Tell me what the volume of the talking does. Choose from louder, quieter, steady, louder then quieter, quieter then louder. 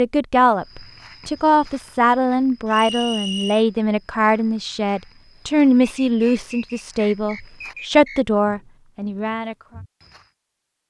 steady.